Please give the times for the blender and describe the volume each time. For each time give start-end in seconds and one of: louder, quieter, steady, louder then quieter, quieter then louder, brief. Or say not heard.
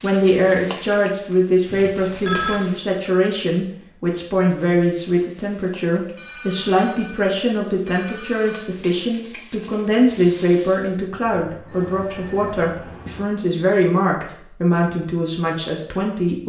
not heard.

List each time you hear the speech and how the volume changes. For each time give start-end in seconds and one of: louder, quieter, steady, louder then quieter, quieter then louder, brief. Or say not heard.
0.0-16.4 steady.